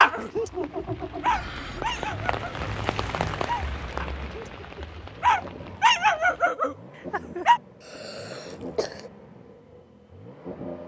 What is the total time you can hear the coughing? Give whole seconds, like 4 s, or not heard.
2 s.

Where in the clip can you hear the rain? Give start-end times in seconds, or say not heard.
0.0-6.5.